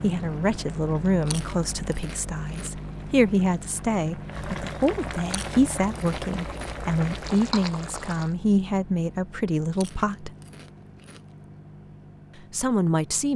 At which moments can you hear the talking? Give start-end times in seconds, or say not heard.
0.0-10.3, 12.5-13.3.